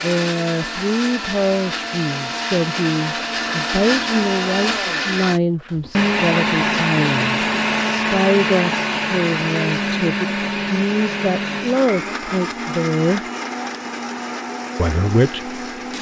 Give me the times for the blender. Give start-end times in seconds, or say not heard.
0.0-15.9.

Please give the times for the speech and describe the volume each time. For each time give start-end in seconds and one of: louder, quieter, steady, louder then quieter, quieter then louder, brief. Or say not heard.
0.0-13.2 steady
14.8-15.6 brief.